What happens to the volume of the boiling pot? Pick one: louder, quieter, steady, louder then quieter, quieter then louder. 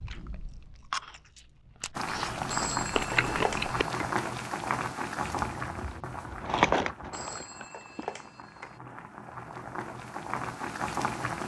quieter then louder.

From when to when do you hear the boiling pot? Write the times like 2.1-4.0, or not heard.
1.9-11.4.